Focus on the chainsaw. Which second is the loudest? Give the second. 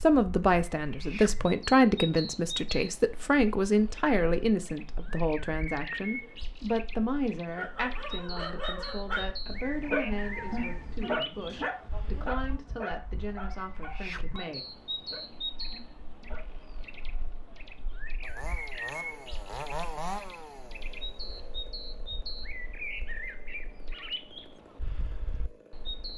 20 s.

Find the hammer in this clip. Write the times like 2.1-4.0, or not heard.
not heard.